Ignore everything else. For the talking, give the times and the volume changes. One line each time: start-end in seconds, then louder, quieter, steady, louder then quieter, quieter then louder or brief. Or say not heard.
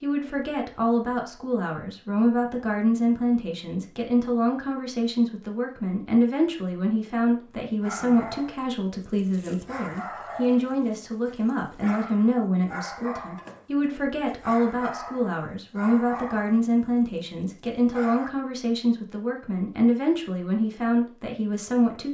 0.0-22.0 steady.